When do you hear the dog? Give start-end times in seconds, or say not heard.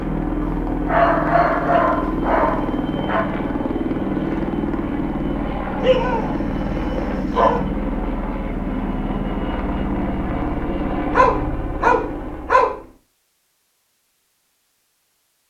0.4-3.2, 5.8-7.6, 11.1-12.8.